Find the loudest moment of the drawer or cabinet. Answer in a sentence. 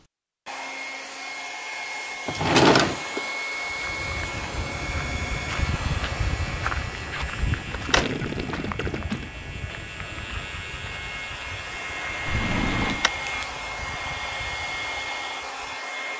The loudest moment of the drawer or cabinet is at 3 seconds.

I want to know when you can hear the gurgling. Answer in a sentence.
The gurgling can be heard from 7.8 to 9.2 s.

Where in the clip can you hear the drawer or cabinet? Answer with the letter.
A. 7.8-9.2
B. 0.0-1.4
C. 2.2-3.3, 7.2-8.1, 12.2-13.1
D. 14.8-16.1
C.